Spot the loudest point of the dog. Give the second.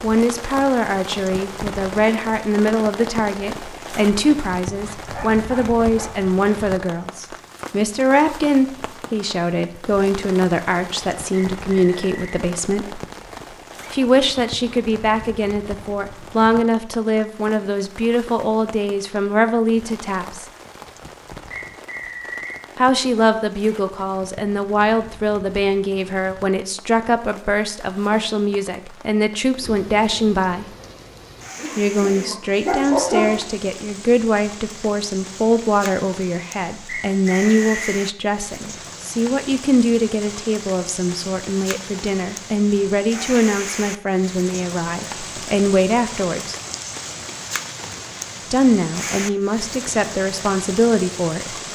33 s.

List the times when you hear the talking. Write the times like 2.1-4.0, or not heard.
0.0-13.0, 13.9-20.4, 22.8-30.6, 31.8-46.5, 48.5-51.5.